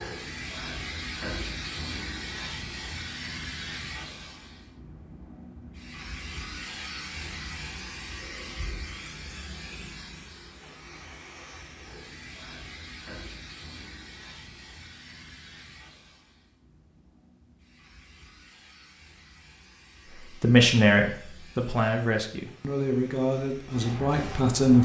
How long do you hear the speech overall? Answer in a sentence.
You can hear the speech for 4 seconds altogether.